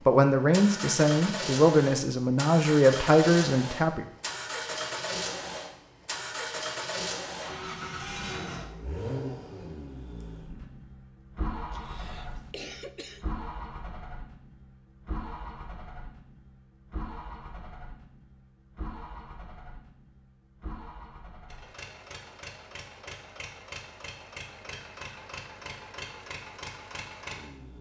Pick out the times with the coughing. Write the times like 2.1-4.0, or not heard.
11.7-13.2.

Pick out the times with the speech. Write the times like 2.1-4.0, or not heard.
0.1-4.0.